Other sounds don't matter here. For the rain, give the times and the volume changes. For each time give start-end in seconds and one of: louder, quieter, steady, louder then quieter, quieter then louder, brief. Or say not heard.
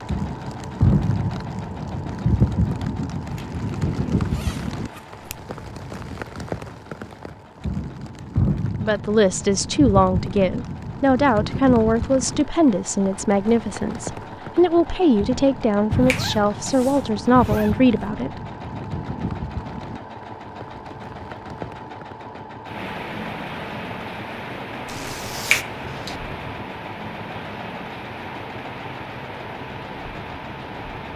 0.0-31.1 quieter.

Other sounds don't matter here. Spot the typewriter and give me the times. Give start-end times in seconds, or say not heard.
not heard.